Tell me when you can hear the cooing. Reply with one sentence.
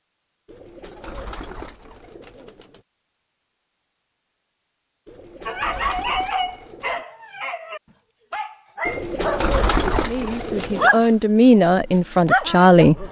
You can hear the cooing from 0.5 to 2.8 s, from 5.0 to 7.0 s and from 8.8 to 10.9 s.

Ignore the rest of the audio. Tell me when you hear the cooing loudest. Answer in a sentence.
The loudest moment of the cooing is at 10 seconds.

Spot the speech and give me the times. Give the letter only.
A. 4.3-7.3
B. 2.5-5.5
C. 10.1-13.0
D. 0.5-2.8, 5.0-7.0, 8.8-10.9
C.